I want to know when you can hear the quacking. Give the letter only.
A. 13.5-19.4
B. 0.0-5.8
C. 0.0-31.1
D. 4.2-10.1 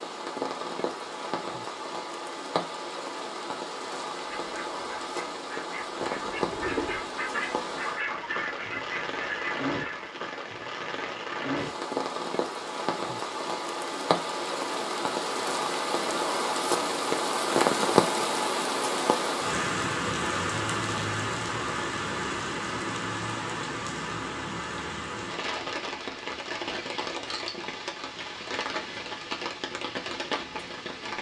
D.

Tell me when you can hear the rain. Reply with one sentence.
The rain can be heard from 0.0 to 31.1 s.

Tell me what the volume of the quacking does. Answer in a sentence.
The volume of the quacking goes up.